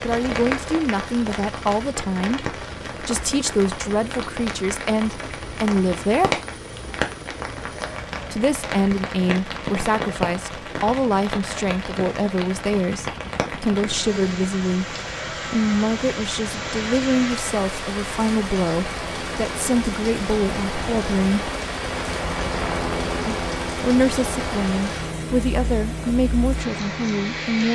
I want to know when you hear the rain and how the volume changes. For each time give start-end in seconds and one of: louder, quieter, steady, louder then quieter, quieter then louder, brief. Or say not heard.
0.0-27.7 steady.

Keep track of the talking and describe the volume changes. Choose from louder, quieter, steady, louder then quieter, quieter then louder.
steady.